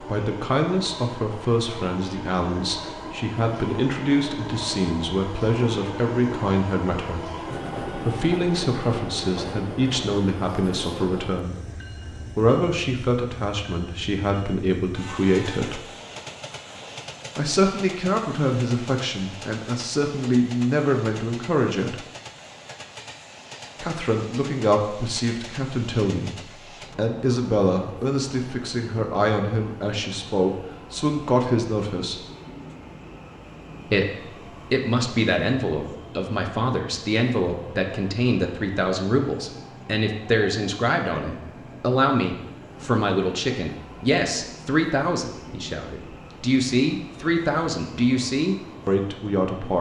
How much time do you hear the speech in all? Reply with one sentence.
The speech can be heard for 44 seconds in total.